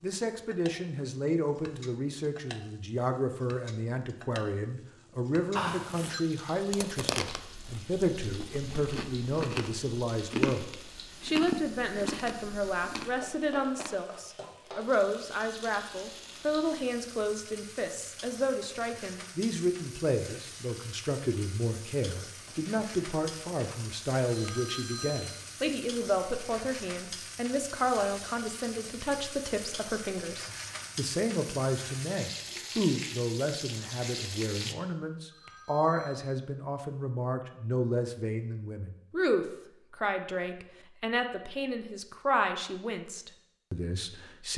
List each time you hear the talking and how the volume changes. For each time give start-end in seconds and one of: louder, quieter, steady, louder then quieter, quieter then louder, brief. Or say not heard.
0.0-44.5 steady.